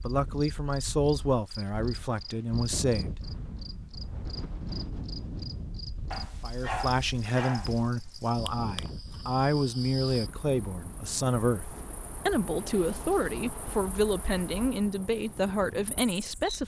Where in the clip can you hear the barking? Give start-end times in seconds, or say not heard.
6.1-7.8.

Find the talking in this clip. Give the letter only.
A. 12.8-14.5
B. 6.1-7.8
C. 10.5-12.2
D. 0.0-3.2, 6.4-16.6
D.